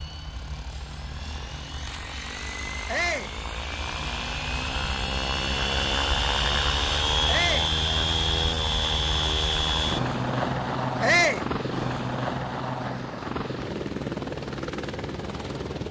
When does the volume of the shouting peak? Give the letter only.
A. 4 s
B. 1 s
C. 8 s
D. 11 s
D.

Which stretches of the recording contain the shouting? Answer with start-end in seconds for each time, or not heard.
2.9-3.4, 7.2-7.7, 11.0-11.4.